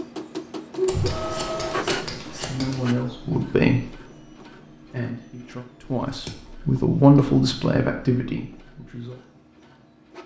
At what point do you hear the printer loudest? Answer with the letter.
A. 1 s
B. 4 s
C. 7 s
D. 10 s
A.